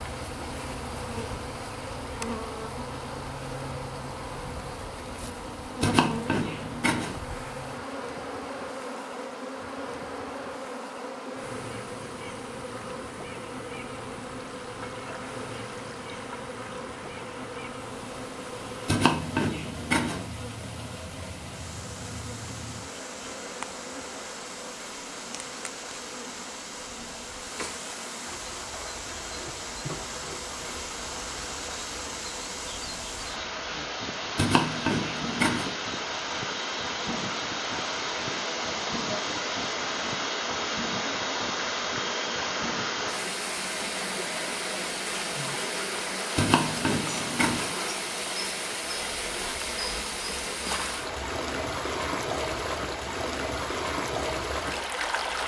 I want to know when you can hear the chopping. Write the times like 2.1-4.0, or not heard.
5.8-7.2, 18.9-20.2, 34.4-35.8, 46.4-47.8.